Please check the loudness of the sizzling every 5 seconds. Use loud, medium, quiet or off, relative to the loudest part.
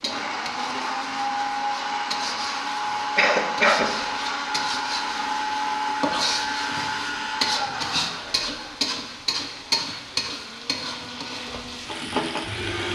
medium, loud, loud.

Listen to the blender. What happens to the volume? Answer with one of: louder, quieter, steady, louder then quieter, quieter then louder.
quieter.